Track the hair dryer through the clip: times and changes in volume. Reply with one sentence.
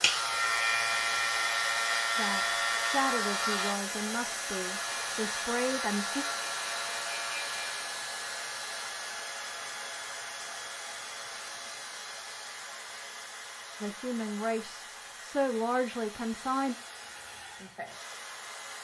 The hair dryer can be heard from 0.0 to 18.7 s, getting quieter.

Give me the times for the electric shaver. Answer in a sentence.
You can hear the electric shaver from 0.0 to 7.8 s.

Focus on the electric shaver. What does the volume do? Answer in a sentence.
The loudness of the electric shaver goes down.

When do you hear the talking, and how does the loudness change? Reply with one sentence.
You can hear the talking from 2.1 to 6.2 s, getting quieter then louder; and briefly from 13.8 to 16.8 s.